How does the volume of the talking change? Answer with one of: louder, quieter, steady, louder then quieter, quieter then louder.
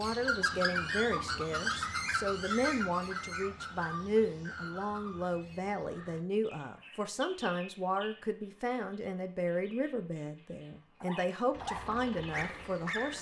steady.